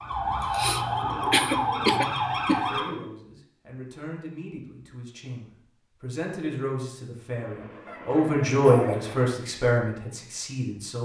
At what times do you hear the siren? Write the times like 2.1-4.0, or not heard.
0.0-2.9.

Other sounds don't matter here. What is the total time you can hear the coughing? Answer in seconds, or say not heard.
4 s.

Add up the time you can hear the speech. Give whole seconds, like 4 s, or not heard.
8 s.